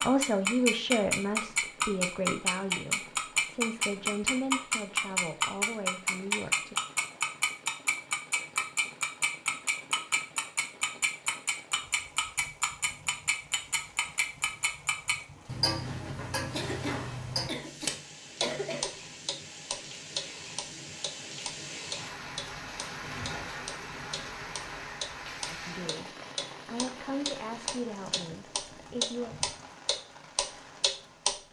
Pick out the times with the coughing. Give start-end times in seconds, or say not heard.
16.5-18.9.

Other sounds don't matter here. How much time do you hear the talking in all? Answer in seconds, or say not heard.
11 s.